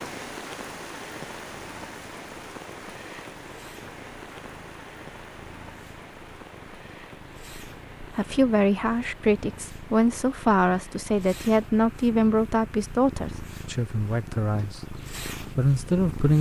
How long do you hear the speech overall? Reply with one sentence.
The speech can be heard for 8 seconds in total.